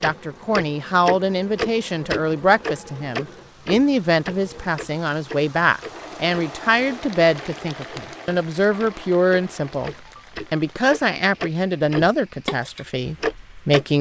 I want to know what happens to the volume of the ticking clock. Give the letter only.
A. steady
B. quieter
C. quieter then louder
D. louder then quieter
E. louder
C.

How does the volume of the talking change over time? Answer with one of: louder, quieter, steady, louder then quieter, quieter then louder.
steady.